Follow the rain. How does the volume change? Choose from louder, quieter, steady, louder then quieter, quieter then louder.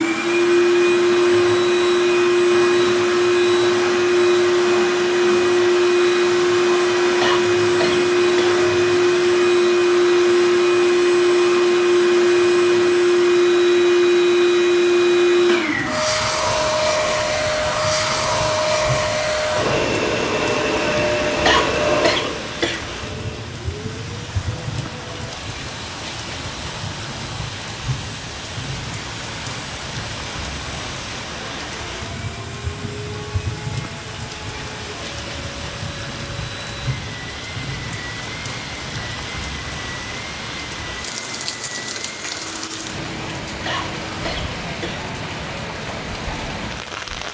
steady.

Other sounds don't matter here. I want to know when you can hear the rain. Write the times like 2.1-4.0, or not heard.
15.7-47.2.